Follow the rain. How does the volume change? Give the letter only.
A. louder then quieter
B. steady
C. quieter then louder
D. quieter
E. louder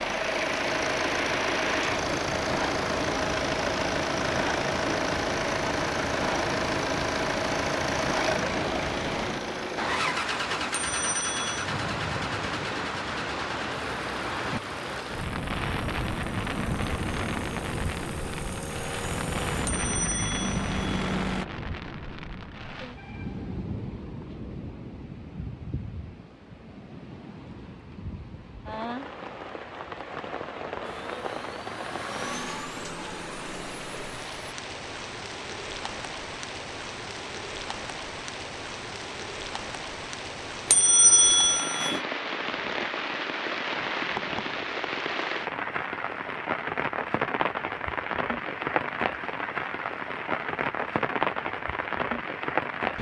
C.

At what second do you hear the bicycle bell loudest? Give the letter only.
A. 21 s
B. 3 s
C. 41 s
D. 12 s
C.